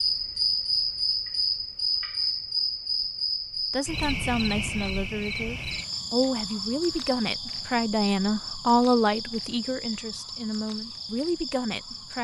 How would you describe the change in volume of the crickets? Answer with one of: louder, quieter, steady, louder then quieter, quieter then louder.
quieter.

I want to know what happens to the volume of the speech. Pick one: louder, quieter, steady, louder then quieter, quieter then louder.
louder then quieter.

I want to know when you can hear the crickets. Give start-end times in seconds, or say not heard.
0.0-12.1.